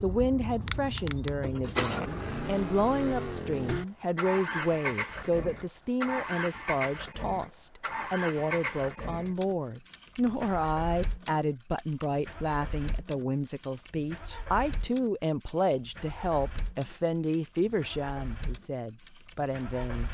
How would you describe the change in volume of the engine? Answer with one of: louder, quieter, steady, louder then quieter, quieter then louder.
quieter.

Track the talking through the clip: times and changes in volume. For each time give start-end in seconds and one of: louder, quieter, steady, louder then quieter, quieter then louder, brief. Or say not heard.
0.0-20.0 steady.